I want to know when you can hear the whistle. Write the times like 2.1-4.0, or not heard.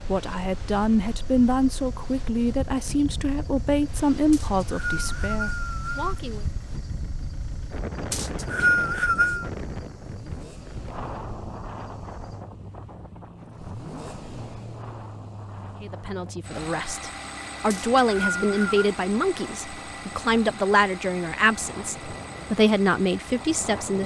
4.3-6.2, 8.1-9.5, 17.7-18.9.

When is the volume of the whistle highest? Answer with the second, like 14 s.
9 s.